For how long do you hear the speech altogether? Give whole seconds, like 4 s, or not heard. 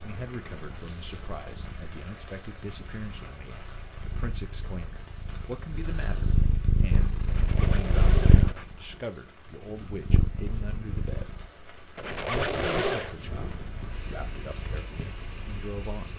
15 s.